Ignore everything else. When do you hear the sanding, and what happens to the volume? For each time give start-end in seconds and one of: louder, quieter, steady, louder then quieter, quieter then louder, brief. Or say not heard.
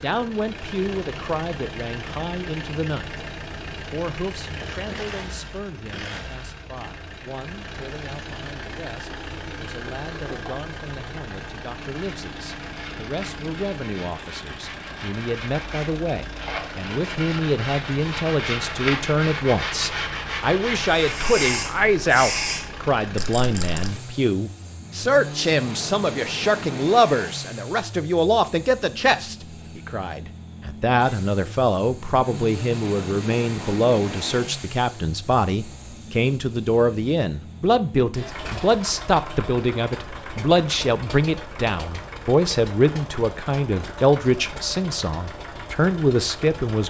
11.9-21.4 louder.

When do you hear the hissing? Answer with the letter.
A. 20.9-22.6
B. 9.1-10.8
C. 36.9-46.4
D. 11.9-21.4
A.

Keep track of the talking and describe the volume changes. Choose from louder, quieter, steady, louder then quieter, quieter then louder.
louder.